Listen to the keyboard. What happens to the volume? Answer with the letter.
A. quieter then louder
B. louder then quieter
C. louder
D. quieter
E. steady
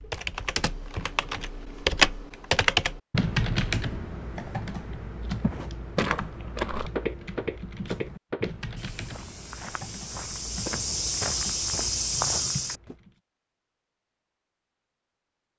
D.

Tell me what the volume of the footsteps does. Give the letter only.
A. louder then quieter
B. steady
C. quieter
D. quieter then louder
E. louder
D.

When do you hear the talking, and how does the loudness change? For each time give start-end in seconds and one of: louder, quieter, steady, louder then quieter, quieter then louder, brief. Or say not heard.
not heard.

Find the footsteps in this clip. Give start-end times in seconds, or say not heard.
5.4-12.9.